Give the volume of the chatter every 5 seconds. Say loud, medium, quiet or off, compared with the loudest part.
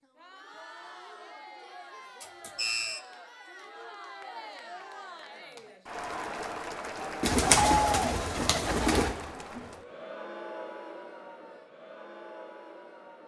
quiet, loud, medium.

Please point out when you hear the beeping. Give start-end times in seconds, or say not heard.
2.2-3.0.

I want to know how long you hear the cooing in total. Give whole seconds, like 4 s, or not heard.
2 s.